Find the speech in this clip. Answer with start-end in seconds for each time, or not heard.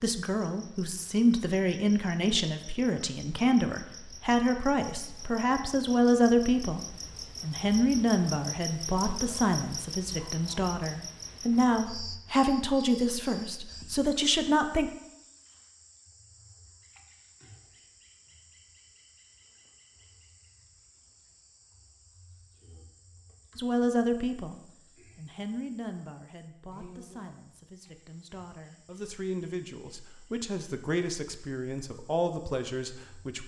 0.0-14.9, 23.6-33.4.